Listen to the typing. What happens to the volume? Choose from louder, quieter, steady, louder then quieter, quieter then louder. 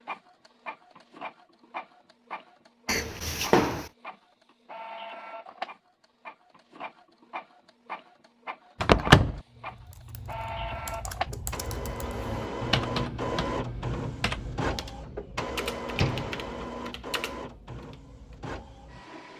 louder then quieter.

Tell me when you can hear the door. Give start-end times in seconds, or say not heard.
2.9-3.9, 8.8-9.4, 15.9-16.4.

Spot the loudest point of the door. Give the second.
9 s.